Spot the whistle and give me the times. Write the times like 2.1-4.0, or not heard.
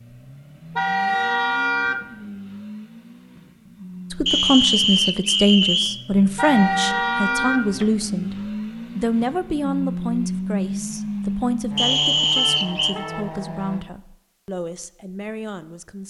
4.2-6.0, 11.8-12.9.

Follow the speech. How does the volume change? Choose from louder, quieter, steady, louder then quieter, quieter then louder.
quieter.